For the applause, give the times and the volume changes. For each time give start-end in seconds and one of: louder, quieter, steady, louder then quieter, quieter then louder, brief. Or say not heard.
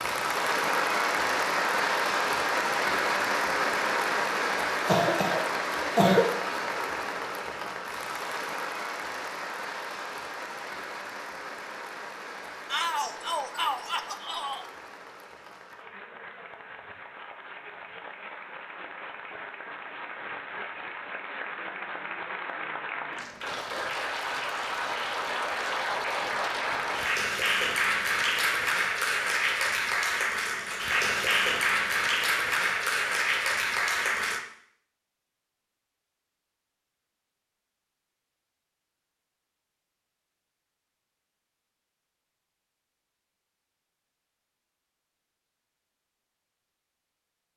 0.0-34.5 quieter then louder.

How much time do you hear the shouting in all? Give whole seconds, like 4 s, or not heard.
2 s.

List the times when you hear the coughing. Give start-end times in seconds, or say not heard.
4.7-6.3.